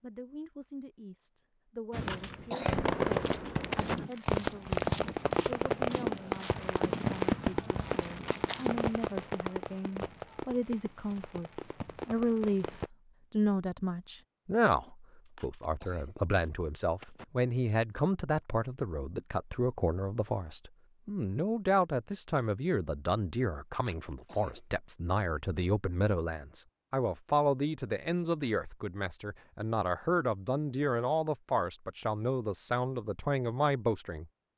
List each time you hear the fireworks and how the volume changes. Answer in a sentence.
You can hear the fireworks from 1.9 to 12.9 s, getting quieter.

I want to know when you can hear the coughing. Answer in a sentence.
You can hear the coughing from 1.9 to 4.0 s, from 15.2 to 17.2 s and from 23.7 to 24.7 s.